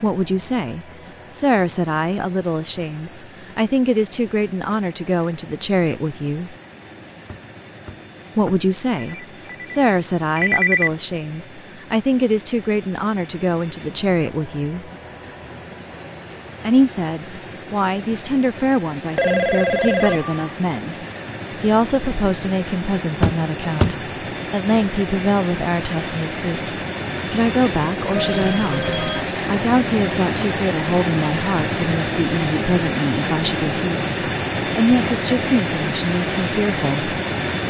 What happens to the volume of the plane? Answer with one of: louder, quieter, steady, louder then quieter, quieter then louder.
louder.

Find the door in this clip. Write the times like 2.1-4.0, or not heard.
7.2-9.2, 23.2-23.9.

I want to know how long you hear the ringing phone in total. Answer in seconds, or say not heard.
4 s.